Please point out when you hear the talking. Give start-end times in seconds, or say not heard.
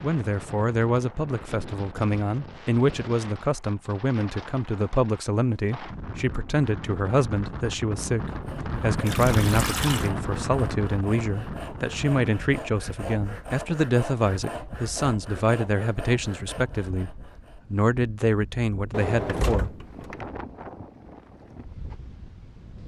0.0-20.2.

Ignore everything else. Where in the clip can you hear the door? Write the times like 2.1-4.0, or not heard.
18.9-20.1.